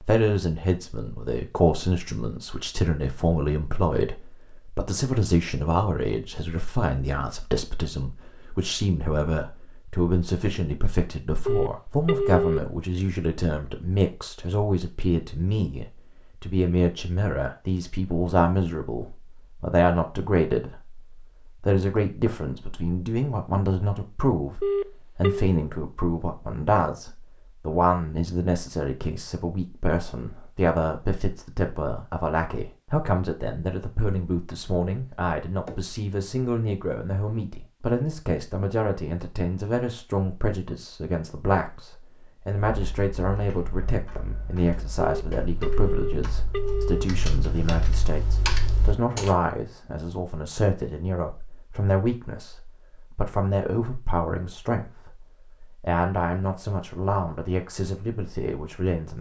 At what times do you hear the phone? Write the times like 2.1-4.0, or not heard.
11.4-12.6, 24.6-25.4, 45.0-47.0.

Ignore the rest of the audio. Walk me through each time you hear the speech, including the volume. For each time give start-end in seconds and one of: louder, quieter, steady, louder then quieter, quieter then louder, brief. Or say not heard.
0.0-59.1 steady.